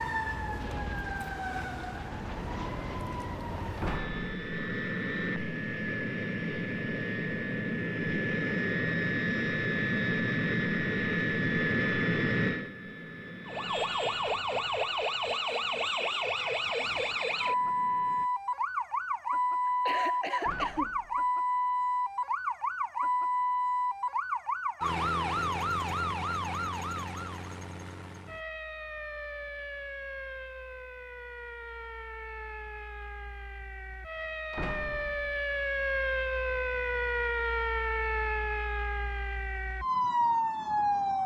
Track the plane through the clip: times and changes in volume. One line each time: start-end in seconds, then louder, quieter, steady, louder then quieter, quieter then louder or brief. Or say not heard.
0.0-18.3 louder then quieter.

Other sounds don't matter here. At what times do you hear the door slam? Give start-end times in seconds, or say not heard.
3.8-4.4, 20.4-21.3, 34.5-35.4.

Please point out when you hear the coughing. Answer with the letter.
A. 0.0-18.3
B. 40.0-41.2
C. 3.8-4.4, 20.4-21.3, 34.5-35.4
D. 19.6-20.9
D.